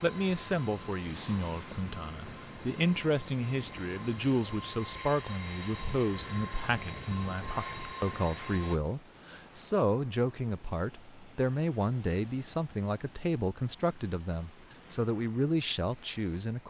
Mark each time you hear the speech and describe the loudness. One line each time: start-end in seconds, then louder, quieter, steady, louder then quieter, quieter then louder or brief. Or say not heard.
0.0-16.6 steady.